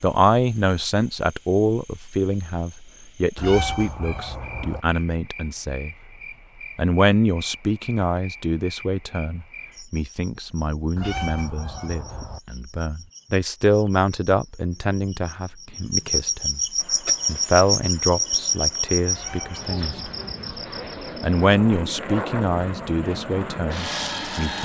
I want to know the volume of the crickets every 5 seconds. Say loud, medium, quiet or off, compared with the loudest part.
quiet, quiet, quiet, loud, quiet.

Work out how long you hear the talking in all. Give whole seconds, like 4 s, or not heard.
22 s.